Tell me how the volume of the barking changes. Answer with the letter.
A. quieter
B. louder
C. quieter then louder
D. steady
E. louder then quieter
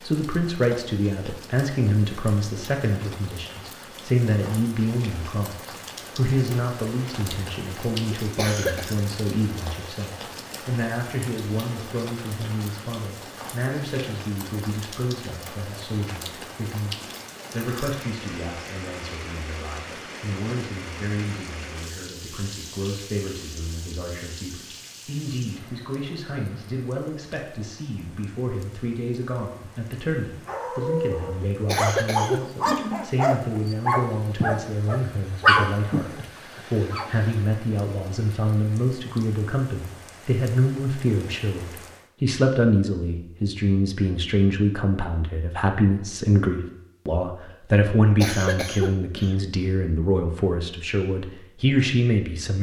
E.